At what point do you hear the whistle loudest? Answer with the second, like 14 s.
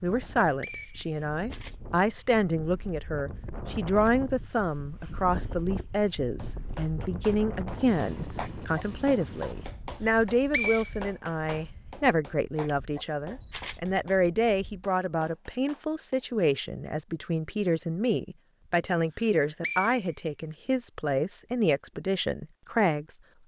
11 s.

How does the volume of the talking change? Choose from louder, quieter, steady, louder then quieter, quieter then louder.
steady.